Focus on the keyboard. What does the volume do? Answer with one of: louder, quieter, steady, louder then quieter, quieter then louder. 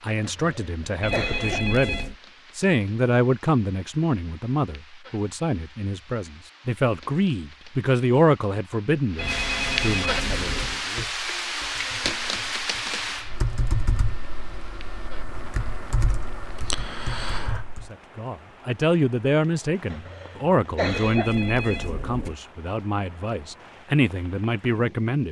louder.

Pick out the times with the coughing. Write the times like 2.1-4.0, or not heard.
0.2-1.6, 19.9-21.3.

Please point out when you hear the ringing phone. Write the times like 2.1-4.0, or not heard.
1.0-2.1, 9.2-10.8, 20.9-22.4.